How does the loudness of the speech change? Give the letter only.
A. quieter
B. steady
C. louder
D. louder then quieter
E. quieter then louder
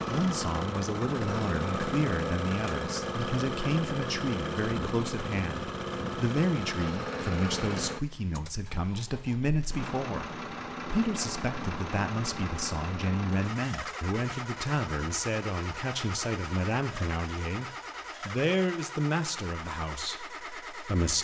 B.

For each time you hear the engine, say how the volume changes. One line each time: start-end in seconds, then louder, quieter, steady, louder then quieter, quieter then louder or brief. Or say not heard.
0.0-21.1 quieter.